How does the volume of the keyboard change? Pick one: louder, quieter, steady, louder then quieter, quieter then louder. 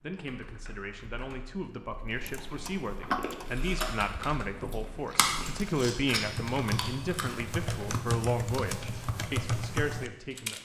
louder.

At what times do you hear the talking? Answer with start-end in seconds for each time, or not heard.
0.0-10.6.